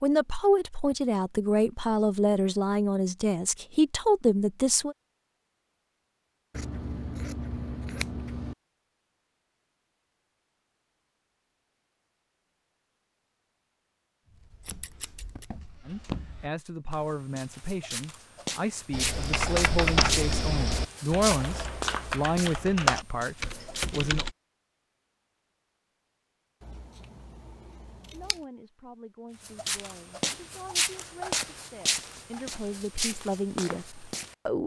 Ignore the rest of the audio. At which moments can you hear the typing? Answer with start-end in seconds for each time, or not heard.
18.9-24.4.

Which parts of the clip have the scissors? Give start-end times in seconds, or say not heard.
6.5-8.6, 14.7-15.4, 26.6-28.4.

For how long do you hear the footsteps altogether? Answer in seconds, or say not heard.
15 s.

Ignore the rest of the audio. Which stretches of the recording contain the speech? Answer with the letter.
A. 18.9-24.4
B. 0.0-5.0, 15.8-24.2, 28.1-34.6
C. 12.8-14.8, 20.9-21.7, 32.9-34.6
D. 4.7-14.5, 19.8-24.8
B.